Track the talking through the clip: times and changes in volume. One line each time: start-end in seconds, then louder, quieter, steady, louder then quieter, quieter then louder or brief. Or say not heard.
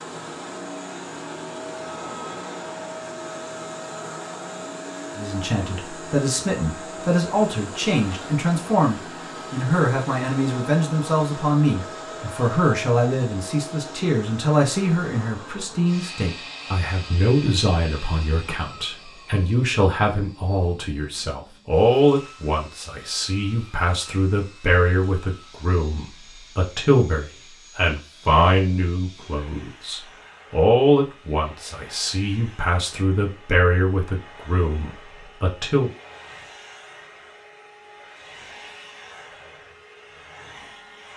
5.2-35.9 steady.